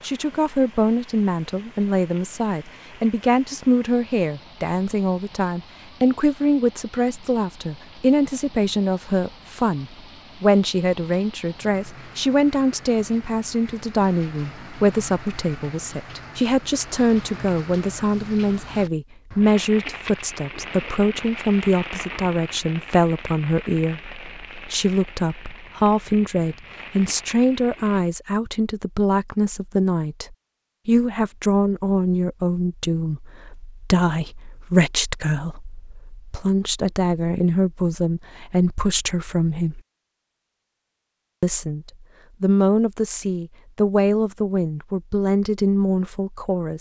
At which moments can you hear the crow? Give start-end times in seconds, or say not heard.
not heard.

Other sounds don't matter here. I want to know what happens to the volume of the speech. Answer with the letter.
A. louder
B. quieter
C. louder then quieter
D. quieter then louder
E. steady
E.